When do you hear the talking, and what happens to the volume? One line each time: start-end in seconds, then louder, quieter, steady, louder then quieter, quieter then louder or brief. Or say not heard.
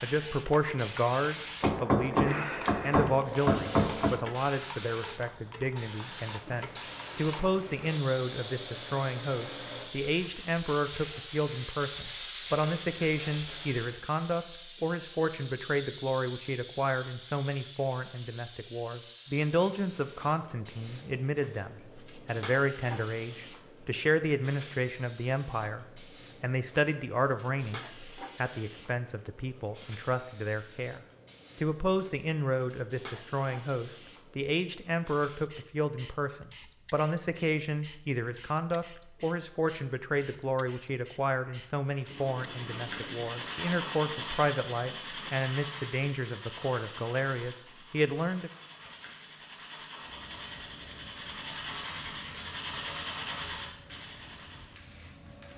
0.0-48.5 steady.